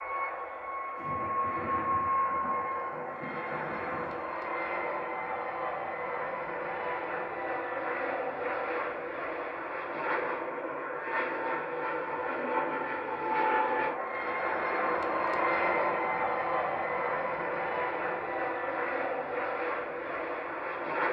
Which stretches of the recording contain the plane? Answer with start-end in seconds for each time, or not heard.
0.0-21.0.